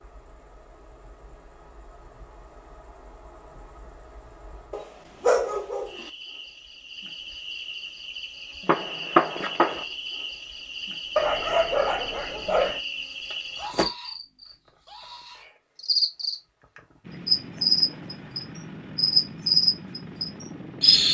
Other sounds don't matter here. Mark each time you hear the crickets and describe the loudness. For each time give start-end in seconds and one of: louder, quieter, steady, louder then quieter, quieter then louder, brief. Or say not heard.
0.0-21.0 louder.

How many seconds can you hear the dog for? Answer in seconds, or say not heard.
3 s.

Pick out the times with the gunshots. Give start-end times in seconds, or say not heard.
8.7-9.8.